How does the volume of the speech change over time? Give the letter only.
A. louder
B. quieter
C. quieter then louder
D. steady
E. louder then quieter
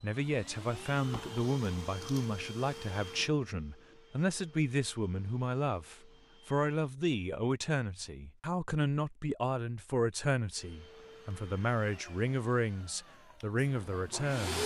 D.